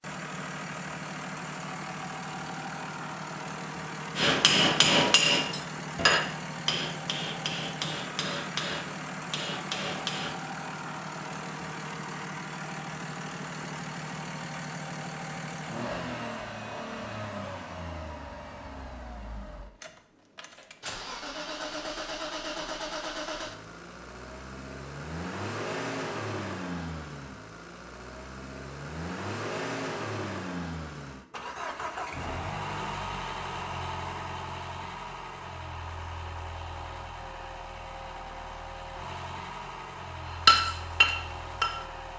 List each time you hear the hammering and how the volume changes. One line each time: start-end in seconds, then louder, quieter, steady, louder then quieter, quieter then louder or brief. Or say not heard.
4.2-10.3 quieter
40.5-41.9 brief.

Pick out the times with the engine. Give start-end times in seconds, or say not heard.
0.0-42.1.